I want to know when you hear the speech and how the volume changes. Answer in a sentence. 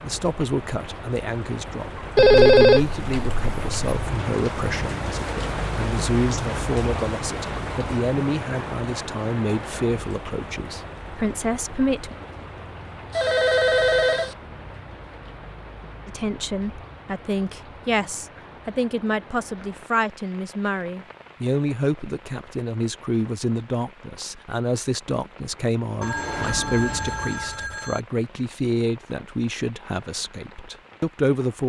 The speech can be heard from 0.0 to 12.2 s, at a steady volume; and from 16.1 to 31.6 s, at a steady volume.